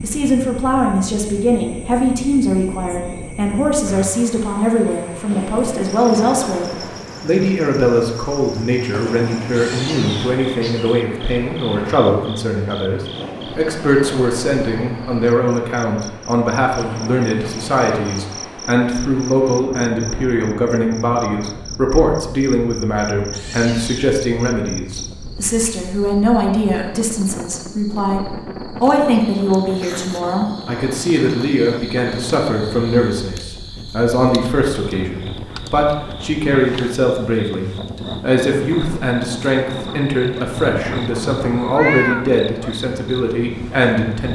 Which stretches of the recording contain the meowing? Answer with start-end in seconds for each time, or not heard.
9.5-11.1, 23.3-24.2, 40.5-42.4.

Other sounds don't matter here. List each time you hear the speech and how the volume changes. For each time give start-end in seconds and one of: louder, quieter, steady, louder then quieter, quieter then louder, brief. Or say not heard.
0.0-44.2 steady.